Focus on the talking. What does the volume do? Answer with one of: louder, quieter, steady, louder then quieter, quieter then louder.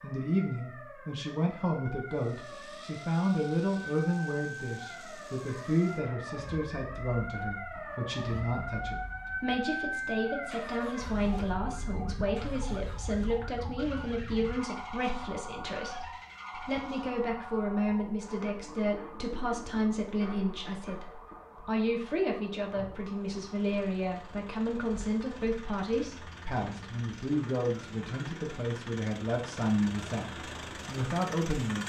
steady.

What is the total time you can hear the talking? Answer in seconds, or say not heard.
32 s.